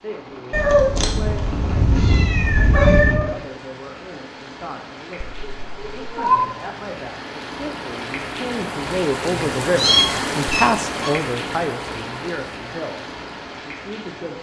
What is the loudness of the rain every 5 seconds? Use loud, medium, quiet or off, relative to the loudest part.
medium, loud, loud.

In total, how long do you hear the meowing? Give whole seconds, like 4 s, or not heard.
5 s.